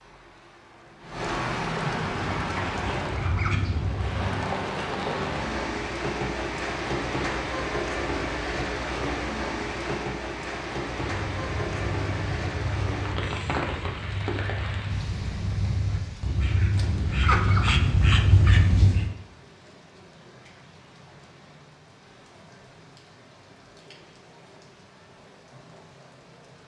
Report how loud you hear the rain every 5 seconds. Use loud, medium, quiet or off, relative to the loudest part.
loud, loud, loud, quiet, quiet, quiet.